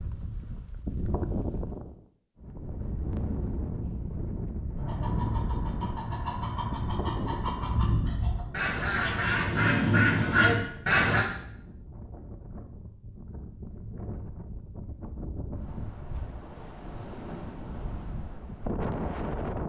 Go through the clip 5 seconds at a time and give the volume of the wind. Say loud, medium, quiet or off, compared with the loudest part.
loud, loud, medium, loud.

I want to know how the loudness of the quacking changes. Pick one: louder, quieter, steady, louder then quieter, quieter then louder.
louder.